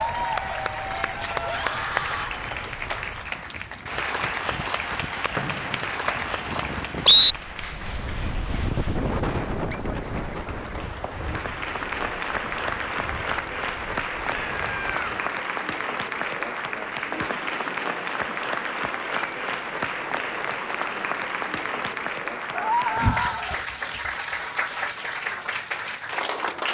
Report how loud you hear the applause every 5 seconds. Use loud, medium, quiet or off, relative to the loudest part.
loud, medium, loud, loud, loud, loud.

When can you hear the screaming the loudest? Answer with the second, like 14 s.
23 s.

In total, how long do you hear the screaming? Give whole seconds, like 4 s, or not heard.
3 s.